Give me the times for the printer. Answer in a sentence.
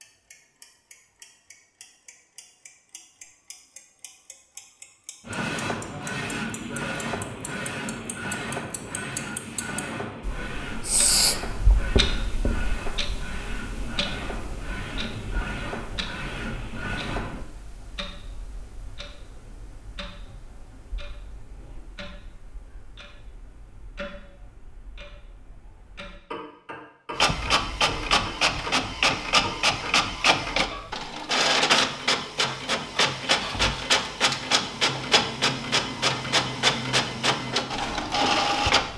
You can hear the printer from 5.2 to 17.4 s and from 27.1 to 38.9 s.